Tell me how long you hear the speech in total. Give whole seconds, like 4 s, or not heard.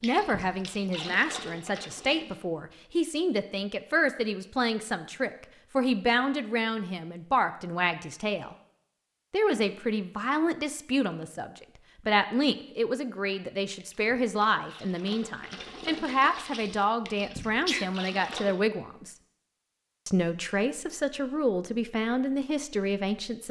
22 s.